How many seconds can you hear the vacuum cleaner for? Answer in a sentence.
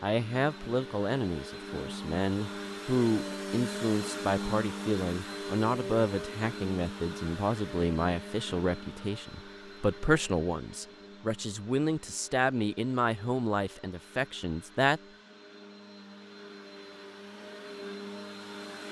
The vacuum cleaner can be heard for 19 seconds in total.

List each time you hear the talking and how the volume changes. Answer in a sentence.
You can hear the talking from 0.0 to 15.0 s, at a steady volume.